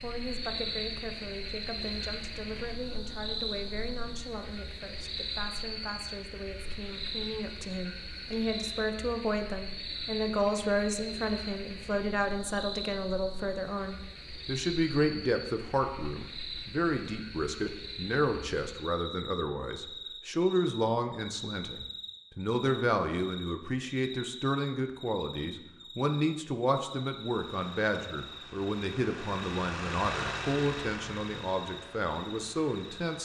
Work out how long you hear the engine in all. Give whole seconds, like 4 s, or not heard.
6 s.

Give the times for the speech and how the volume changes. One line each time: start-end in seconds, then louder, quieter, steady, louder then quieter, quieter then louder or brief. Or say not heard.
0.0-33.2 louder.